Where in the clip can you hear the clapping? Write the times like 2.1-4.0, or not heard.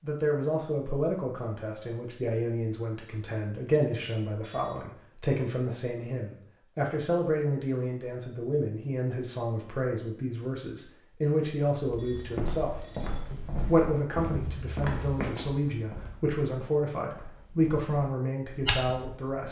not heard.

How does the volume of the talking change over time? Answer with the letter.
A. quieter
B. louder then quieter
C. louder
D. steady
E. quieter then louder
D.